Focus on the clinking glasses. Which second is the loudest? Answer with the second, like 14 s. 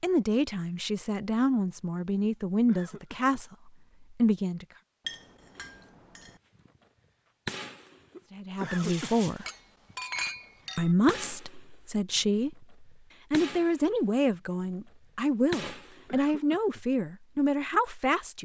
10 s.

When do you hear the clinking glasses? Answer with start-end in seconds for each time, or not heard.
5.0-6.4, 9.4-10.9.